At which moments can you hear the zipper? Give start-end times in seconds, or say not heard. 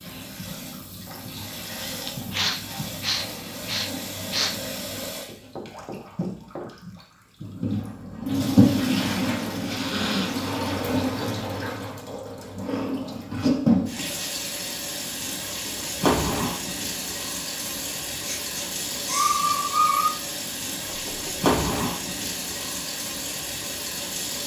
not heard.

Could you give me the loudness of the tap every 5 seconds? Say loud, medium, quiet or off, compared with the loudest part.
medium, loud, loud, loud, loud.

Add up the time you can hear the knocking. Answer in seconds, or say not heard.
2 s.